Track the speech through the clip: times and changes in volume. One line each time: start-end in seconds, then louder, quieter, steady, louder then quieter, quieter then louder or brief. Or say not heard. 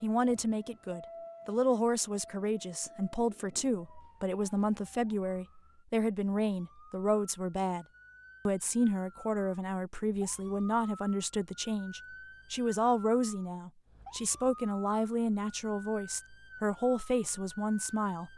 0.0-7.8 steady
8.4-18.3 steady.